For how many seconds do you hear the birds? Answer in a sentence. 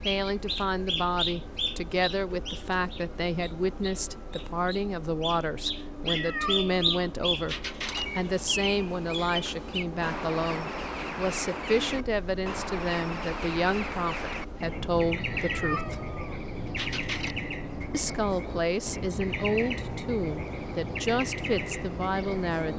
The birds can be heard for 23 seconds in total.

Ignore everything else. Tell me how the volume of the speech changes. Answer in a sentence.
The volume of the speech stays about the same.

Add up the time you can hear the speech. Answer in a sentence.
The speech can be heard for 20 seconds in total.